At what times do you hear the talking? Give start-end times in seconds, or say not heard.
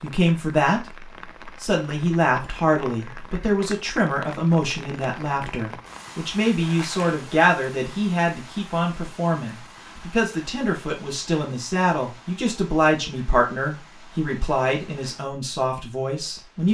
0.0-16.6.